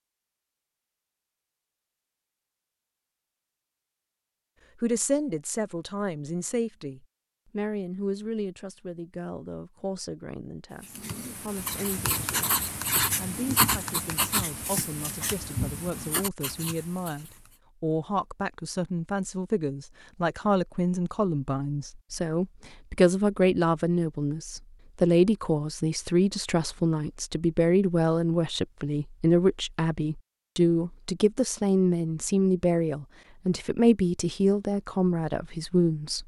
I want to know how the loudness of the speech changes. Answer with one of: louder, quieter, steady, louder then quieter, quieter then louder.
louder.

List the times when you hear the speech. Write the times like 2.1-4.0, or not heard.
4.8-36.2.